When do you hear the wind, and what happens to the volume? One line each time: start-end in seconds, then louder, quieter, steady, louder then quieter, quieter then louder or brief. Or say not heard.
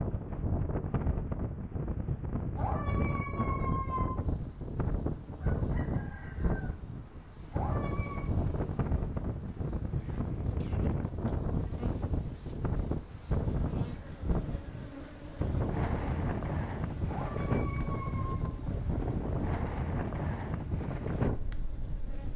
0.0-22.3 steady.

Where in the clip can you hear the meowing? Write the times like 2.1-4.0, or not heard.
2.5-4.0, 7.5-8.2, 17.1-18.6.